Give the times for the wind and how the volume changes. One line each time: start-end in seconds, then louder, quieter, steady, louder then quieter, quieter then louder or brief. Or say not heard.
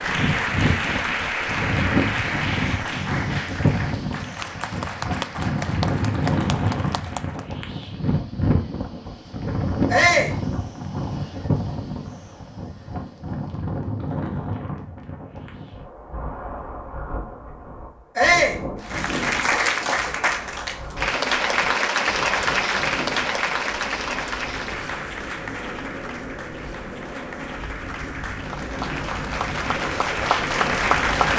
0.0-31.3 quieter.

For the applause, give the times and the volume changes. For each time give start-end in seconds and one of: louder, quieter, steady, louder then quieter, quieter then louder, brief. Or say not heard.
0.0-7.5 quieter
18.8-31.3 quieter then louder.